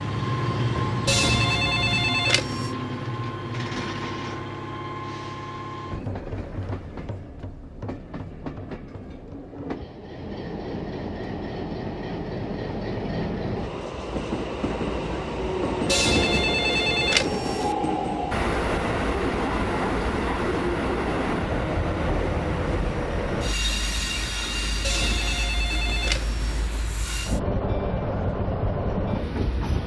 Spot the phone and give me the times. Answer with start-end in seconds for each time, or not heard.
1.1-2.7, 15.8-17.8, 24.8-26.7.